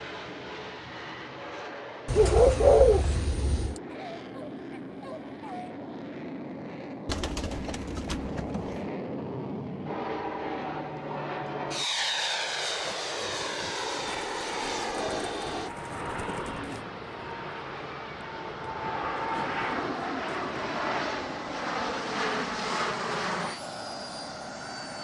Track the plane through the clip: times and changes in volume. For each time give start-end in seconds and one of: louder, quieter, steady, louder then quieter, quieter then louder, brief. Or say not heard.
0.0-24.9 louder.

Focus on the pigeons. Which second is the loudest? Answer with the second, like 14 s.
3 s.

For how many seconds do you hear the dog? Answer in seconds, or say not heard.
2 s.